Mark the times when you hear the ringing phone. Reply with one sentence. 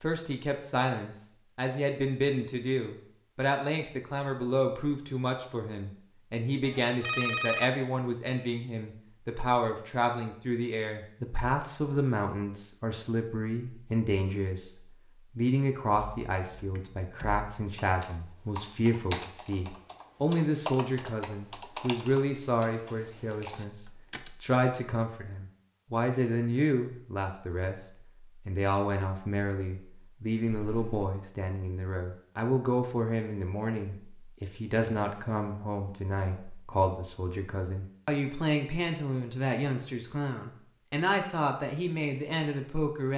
You can hear the ringing phone from 6.6 to 7.7 s and from 30.6 to 31.1 s.